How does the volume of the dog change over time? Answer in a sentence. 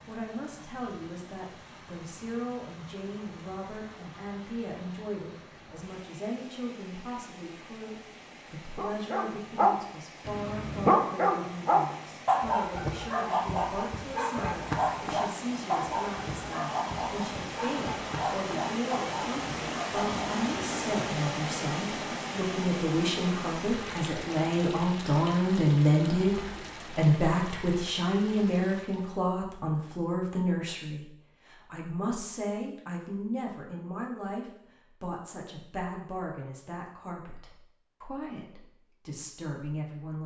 The loudness of the dog goes down.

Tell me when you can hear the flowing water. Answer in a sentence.
The flowing water can be heard from 0.0 to 29.2 s.